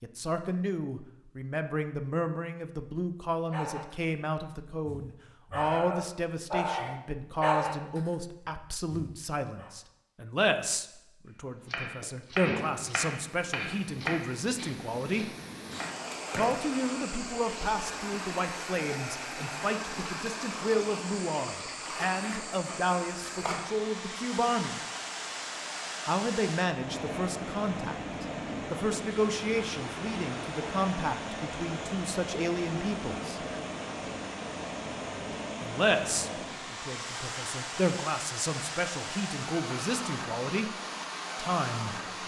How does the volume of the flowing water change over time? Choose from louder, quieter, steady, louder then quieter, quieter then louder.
steady.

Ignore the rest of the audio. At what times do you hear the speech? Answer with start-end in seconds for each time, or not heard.
0.0-15.3, 16.4-24.8, 26.1-33.5, 35.6-42.2.